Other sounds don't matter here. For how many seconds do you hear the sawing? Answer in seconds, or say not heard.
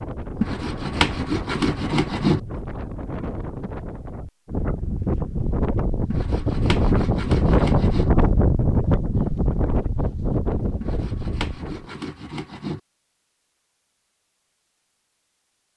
6 s.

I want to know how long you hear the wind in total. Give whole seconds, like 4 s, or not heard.
12 s.